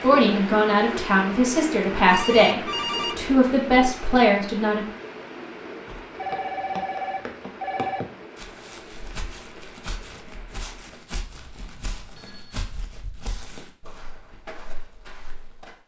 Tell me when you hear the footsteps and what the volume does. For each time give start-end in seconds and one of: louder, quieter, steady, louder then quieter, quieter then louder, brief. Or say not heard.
5.8-15.8 quieter.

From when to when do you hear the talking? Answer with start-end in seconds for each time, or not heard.
0.0-4.8.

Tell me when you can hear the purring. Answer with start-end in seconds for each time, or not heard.
not heard.